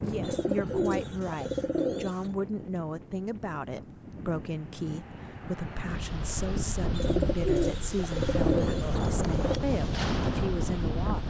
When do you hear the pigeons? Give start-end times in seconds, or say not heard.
0.2-2.3, 6.9-9.6.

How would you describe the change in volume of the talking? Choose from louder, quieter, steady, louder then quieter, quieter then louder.
steady.